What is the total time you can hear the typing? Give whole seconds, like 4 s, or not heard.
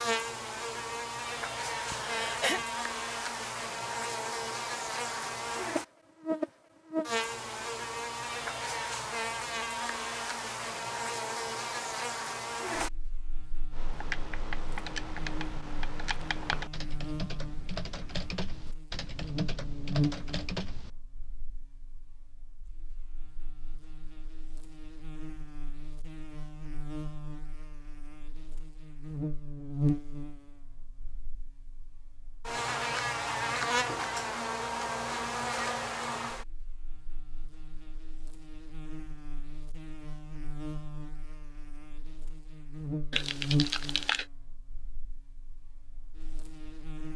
7 s.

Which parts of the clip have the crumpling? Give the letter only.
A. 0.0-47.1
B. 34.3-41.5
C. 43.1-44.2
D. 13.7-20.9
C.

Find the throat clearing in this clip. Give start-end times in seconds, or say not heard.
1.9-2.6.